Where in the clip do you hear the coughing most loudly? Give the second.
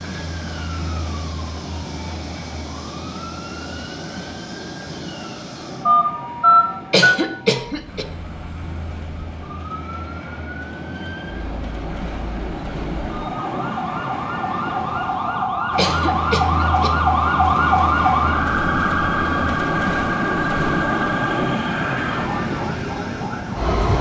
7 s.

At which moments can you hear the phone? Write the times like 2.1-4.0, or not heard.
5.8-7.2.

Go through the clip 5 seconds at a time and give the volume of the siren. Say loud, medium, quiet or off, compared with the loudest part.
quiet, quiet, medium, loud, medium.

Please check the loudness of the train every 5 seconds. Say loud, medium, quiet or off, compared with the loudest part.
medium, quiet, medium, loud, loud.